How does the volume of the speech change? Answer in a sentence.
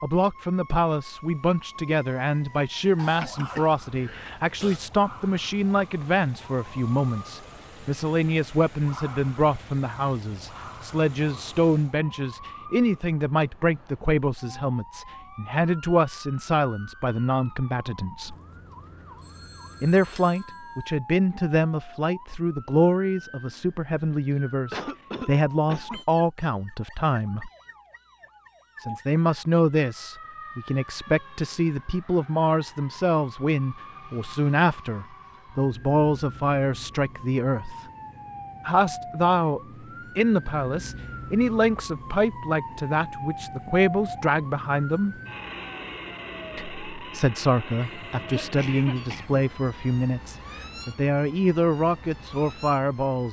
The volume of the speech stays about the same.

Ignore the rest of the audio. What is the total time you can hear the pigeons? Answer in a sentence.
You can't hear the pigeons here.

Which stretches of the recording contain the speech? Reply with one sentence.
The speech can be heard from 0.0 to 18.4 s, from 19.8 to 27.5 s, from 28.8 to 37.9 s, from 38.6 to 45.1 s and from 46.5 to 53.2 s.